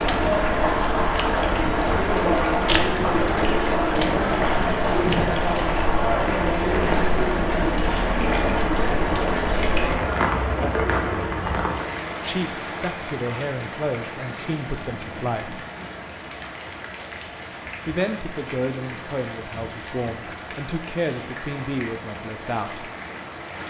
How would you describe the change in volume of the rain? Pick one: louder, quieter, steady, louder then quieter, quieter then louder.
quieter.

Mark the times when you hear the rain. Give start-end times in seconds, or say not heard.
0.0-23.6.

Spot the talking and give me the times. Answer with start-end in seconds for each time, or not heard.
12.2-15.7, 17.9-22.9.